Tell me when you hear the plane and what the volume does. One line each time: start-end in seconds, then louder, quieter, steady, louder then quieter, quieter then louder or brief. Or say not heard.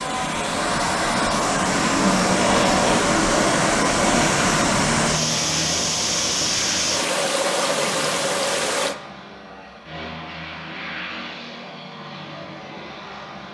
0.0-13.4 quieter.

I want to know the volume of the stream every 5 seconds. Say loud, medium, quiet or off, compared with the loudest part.
loud, loud, off.